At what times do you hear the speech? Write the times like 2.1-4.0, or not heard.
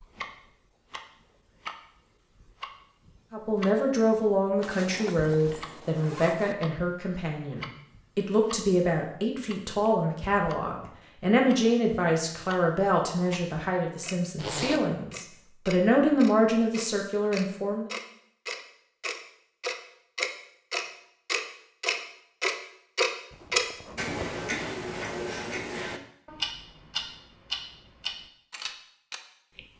3.3-17.9.